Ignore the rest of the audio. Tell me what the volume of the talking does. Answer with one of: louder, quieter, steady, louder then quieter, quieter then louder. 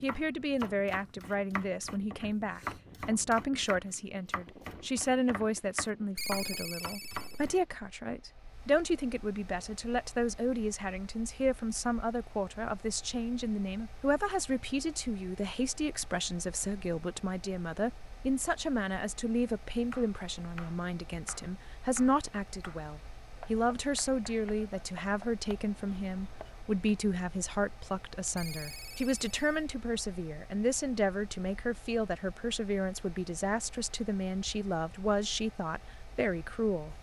steady.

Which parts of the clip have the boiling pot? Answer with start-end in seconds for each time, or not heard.
not heard.